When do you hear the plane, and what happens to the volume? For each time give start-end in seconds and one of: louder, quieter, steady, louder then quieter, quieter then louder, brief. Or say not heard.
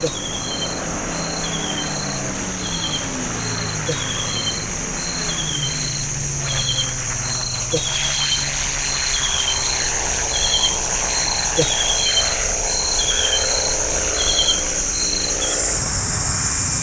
0.0-16.7 steady.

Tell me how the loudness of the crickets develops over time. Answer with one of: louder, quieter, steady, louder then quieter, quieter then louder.
louder.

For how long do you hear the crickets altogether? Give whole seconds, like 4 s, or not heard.
17 s.